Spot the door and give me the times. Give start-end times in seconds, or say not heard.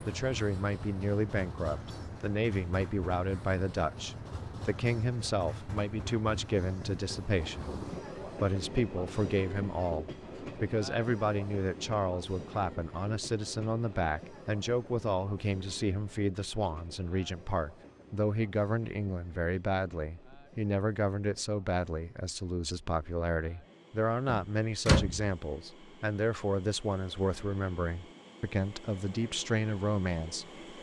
24.2-25.3.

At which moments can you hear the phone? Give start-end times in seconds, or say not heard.
not heard.